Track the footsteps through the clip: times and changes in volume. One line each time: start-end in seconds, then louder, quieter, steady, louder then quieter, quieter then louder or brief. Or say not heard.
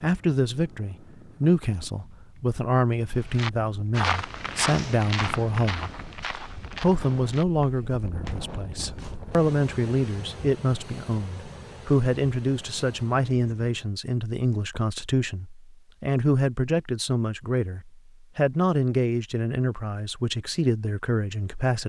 3.3-9.2 quieter.